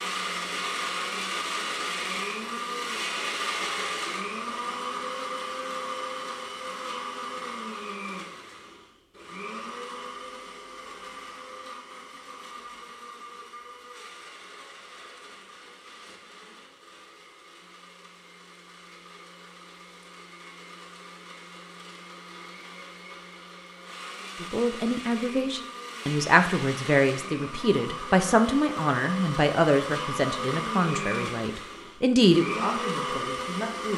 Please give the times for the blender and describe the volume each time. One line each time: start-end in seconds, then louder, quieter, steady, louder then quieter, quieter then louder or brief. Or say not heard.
0.0-33.9 quieter then louder.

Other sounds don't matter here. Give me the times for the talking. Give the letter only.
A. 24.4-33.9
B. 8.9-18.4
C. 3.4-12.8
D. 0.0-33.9
A.